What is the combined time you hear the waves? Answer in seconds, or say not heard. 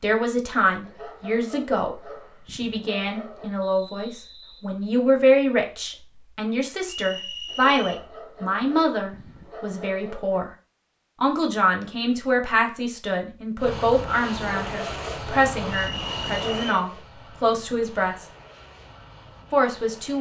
not heard.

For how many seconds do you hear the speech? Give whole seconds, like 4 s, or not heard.
18 s.